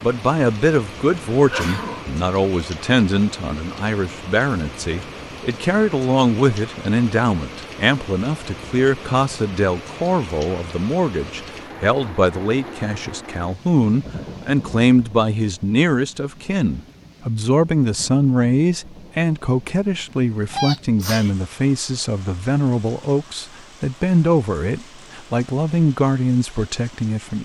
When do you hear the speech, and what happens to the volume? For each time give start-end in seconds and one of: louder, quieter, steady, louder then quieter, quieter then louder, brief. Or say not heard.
0.0-27.3 steady.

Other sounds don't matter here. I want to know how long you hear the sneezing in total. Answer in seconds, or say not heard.
2 s.